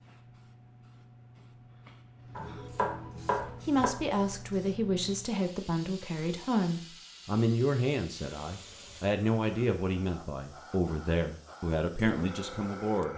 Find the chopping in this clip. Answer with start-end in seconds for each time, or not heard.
2.4-3.9.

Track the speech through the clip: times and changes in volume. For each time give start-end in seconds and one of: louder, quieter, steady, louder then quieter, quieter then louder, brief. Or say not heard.
3.5-13.1 steady.